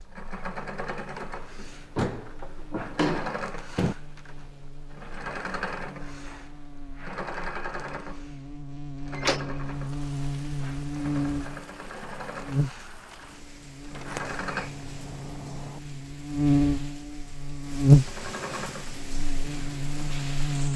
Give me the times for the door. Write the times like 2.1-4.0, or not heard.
1.9-4.0, 9.2-9.8, 13.9-15.8.